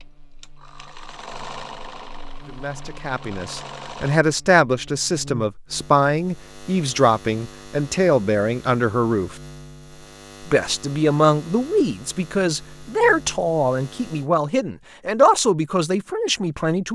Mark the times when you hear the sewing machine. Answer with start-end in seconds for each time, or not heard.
0.0-4.2.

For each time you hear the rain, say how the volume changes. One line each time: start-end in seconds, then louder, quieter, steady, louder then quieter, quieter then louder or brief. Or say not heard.
not heard.